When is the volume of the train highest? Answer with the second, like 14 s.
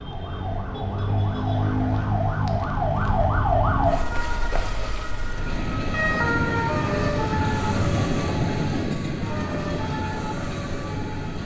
8 s.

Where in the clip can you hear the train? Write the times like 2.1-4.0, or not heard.
5.2-11.4.